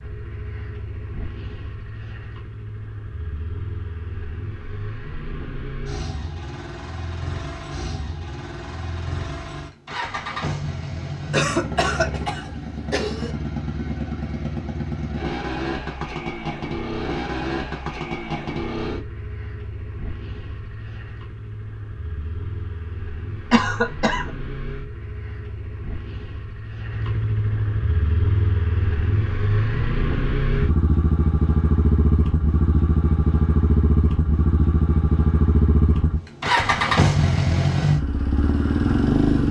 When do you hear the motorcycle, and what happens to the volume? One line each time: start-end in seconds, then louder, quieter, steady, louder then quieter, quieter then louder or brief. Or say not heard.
0.0-39.4 louder.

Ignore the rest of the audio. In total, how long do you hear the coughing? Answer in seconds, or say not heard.
3 s.